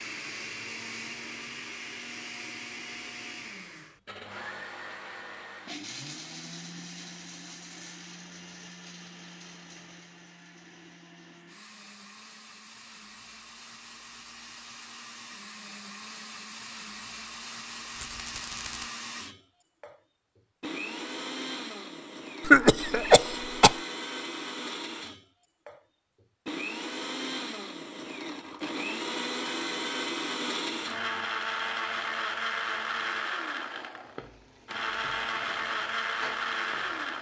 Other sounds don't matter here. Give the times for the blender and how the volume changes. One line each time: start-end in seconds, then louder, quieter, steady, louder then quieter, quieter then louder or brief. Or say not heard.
0.0-37.1 quieter then louder.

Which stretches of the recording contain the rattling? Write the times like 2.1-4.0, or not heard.
17.9-18.9.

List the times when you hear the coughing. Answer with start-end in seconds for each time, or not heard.
22.4-23.8.